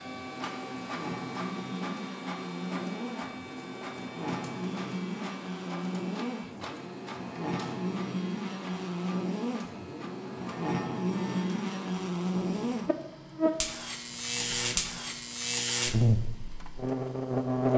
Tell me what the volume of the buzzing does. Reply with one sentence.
The volume of the buzzing goes up.